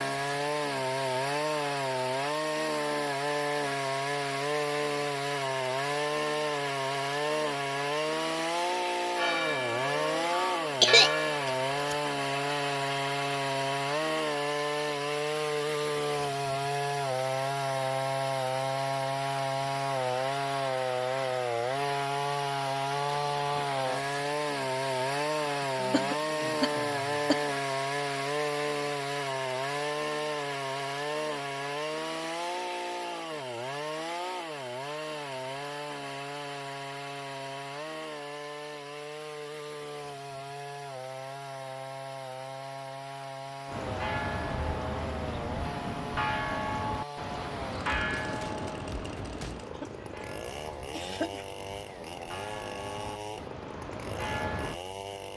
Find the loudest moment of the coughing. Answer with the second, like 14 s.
11 s.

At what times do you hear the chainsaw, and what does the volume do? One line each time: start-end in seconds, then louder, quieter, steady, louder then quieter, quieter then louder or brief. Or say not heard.
0.0-55.3 quieter.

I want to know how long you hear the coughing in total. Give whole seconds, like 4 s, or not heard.
4 s.